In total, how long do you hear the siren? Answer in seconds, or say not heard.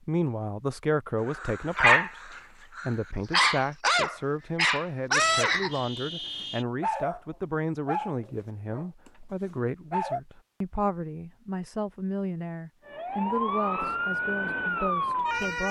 3 s.